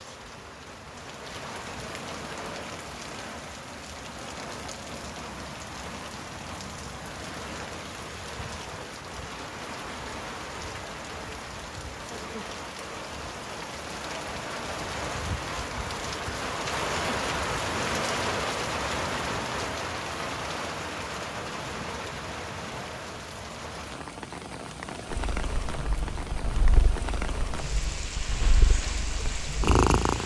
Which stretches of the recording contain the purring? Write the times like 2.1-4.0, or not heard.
25.1-30.2.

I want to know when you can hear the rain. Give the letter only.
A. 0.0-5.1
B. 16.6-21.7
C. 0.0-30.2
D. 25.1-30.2
C.